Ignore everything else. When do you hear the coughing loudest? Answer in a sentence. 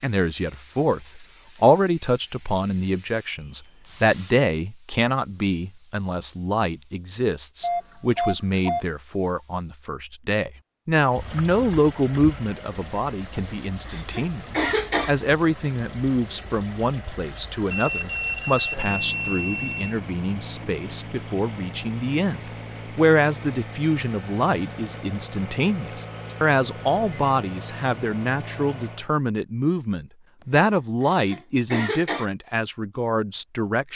The volume of the coughing peaks at 15 seconds.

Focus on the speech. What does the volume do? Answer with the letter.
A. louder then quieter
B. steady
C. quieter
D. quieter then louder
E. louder
B.